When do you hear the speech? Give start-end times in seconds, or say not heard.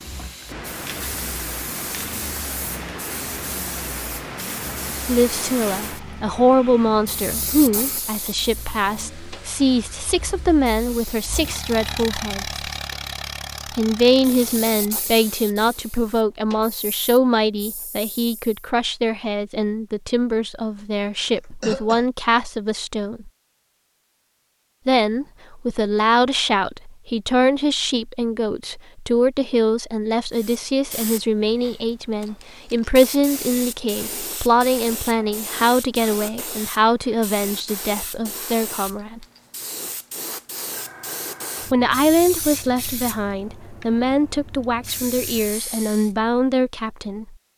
5.0-12.5, 13.8-23.3, 24.9-39.2, 41.6-47.4.